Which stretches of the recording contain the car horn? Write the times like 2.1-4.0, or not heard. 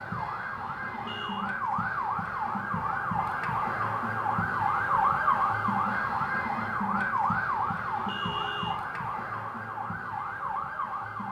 0.6-1.5, 7.5-8.8.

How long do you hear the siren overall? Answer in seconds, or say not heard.
11 s.